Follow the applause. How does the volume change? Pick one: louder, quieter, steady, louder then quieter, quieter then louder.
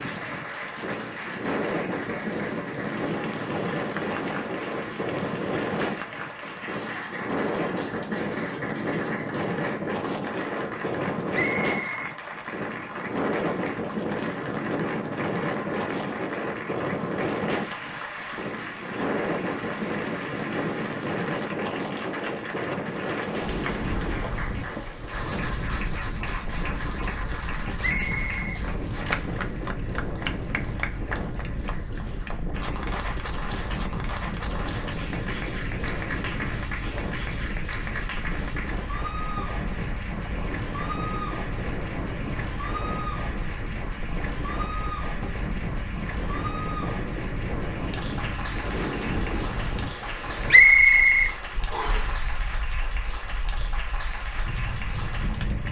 steady.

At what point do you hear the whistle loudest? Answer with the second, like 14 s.
51 s.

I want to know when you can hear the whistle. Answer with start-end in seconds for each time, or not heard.
11.3-12.2, 27.8-29.4, 50.5-52.1.